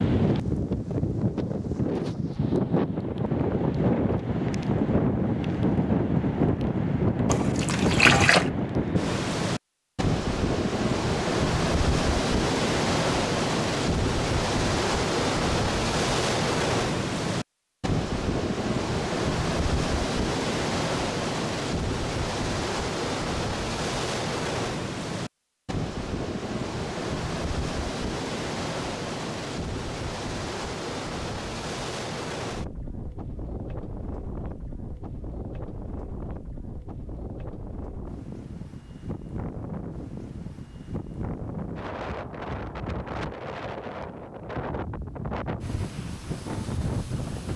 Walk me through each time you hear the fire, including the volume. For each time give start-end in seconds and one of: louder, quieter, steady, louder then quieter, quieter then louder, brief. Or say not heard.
not heard.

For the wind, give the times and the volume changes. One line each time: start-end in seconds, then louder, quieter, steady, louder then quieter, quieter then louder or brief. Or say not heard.
0.0-47.5 quieter.